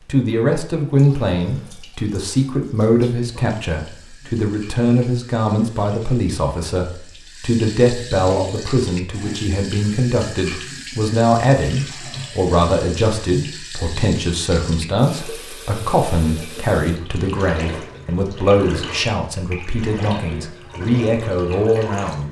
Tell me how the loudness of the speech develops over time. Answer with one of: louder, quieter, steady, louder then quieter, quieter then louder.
steady.